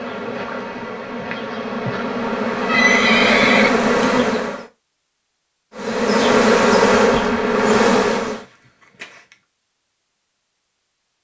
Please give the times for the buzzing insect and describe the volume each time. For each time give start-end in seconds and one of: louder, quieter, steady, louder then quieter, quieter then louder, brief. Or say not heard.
0.0-4.7 louder
5.8-8.4 brief.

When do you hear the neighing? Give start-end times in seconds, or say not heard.
2.6-3.7, 8.2-9.3.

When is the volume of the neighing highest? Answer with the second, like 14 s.
3 s.